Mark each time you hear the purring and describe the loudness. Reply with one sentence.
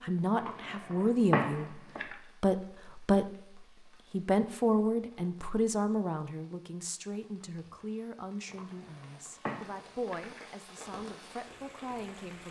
You can't hear the purring here.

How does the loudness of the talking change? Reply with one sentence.
The loudness of the talking goes down.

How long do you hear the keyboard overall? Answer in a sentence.
You can hear the keyboard for 4 seconds altogether.